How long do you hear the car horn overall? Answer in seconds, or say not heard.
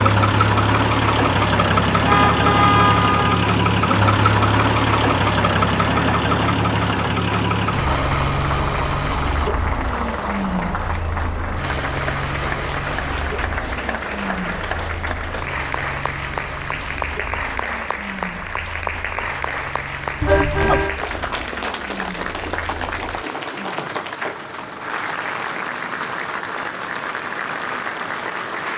2 s.